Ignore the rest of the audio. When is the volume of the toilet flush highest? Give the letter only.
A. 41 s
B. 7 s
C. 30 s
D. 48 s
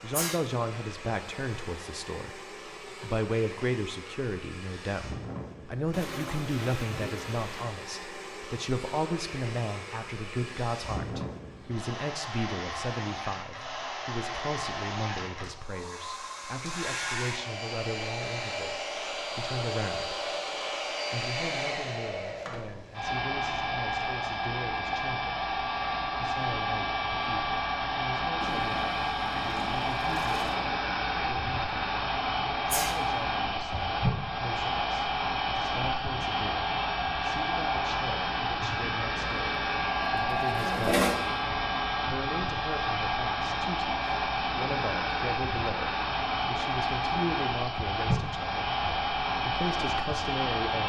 A.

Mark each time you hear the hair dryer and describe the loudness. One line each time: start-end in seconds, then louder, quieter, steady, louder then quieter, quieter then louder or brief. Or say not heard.
0.0-50.8 louder.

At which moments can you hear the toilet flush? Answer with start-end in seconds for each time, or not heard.
5.9-7.5, 28.4-30.6, 40.5-41.1.